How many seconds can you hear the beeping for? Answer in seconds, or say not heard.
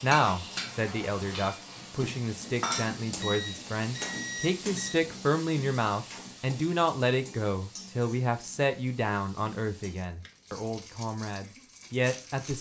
2 s.